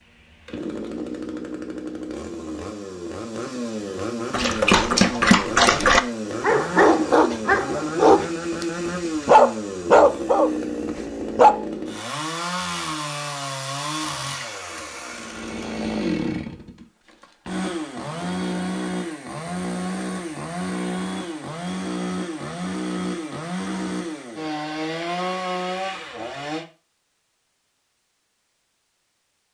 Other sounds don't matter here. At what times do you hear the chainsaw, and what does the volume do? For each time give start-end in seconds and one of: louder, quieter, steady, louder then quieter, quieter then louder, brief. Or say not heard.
0.0-26.6 steady.